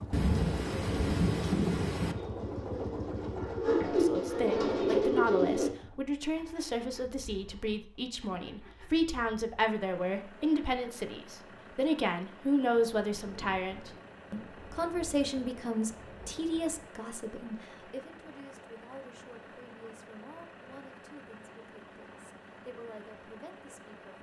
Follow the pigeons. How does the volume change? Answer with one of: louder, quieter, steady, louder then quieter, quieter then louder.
louder.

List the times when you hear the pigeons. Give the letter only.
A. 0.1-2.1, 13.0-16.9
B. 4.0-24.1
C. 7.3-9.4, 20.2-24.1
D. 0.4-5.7
D.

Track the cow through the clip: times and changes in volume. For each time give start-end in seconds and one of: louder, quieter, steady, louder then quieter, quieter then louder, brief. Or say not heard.
not heard.